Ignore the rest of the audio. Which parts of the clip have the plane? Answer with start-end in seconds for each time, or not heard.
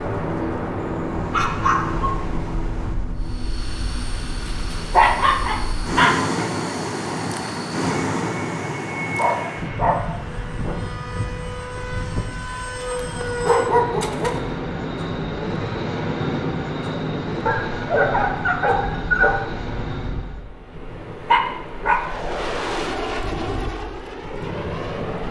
3.1-20.5, 21.9-25.2.